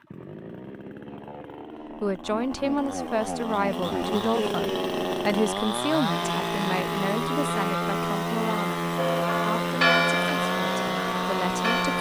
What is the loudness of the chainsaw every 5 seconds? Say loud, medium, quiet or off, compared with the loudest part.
medium, loud, loud.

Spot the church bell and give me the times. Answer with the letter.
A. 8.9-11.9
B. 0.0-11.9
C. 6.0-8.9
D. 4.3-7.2
A.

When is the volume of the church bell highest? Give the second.
10 s.